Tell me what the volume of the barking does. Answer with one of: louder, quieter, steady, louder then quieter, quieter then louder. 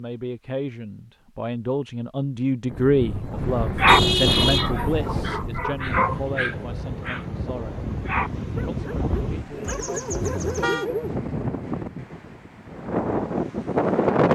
quieter then louder.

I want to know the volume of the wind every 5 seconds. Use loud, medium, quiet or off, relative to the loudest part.
loud, medium, loud.